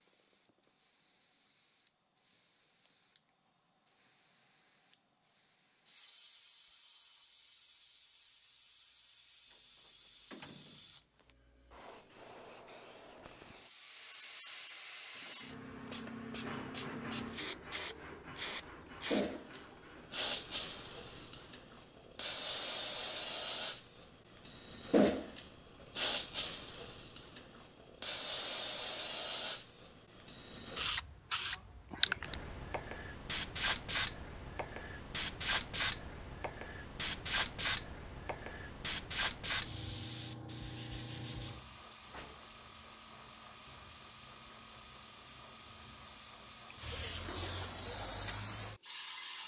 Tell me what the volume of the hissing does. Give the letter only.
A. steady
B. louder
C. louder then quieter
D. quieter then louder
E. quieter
C.